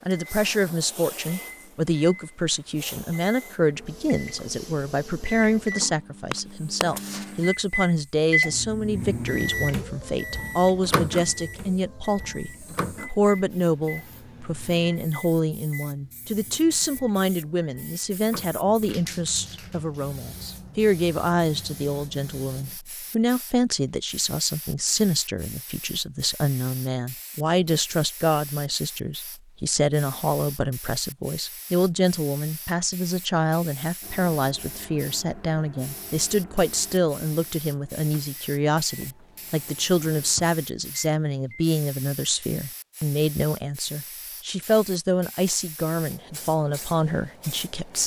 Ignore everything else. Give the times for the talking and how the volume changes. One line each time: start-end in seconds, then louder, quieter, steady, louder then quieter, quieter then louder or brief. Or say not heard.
0.1-48.0 steady.